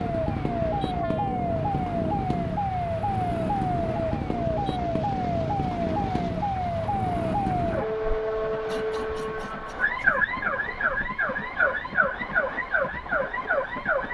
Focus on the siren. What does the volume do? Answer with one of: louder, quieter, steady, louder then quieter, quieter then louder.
steady.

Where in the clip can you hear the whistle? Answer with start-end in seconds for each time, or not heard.
not heard.